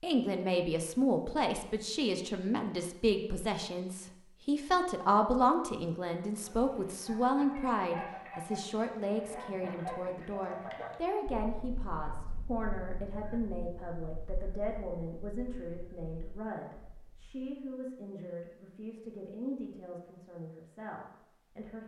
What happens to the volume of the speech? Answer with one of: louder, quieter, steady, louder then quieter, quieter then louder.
quieter.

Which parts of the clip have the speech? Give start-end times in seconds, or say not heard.
0.0-21.8.